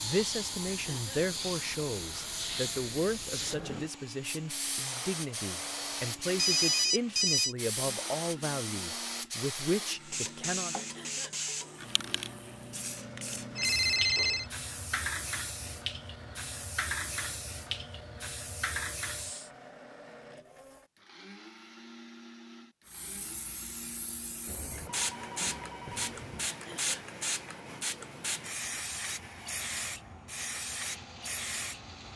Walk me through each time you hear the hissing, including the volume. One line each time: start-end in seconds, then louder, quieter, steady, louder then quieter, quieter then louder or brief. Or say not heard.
0.0-19.5 steady
22.9-32.1 louder.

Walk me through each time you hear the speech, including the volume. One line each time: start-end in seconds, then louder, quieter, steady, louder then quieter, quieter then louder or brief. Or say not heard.
0.0-10.8 steady.